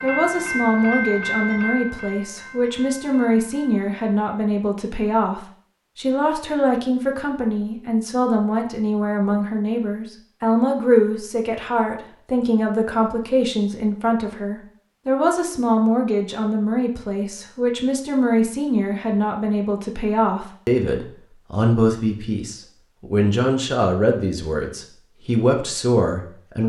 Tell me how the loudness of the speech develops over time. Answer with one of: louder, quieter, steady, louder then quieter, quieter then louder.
steady.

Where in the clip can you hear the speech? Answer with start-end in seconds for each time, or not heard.
0.0-26.6.